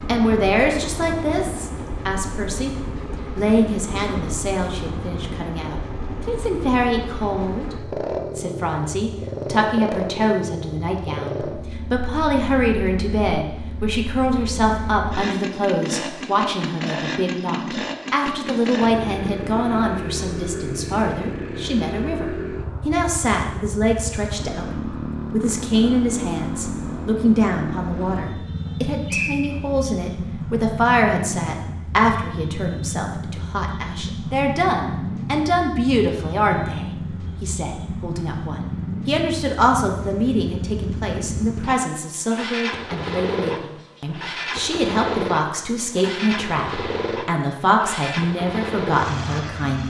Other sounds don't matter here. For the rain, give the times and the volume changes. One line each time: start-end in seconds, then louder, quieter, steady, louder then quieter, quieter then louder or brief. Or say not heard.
not heard.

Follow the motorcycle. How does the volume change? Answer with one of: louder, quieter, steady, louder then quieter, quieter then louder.
steady.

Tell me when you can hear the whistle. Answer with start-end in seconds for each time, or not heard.
28.6-29.6.